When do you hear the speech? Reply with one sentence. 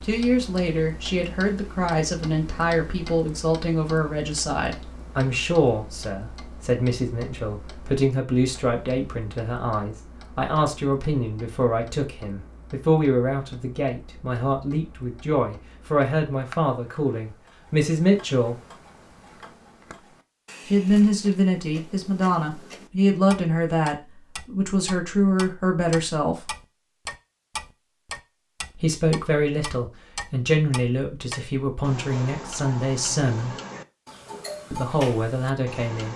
The speech can be heard from 0.0 to 18.6 s, from 20.6 to 26.5 s, from 28.8 to 33.5 s and from 34.7 to 36.1 s.